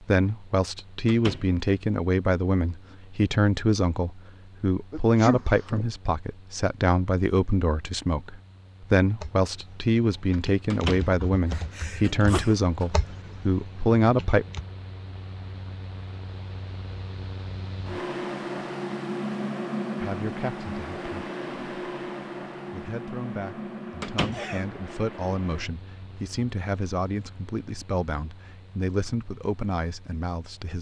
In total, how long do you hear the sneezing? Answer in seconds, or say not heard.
3 s.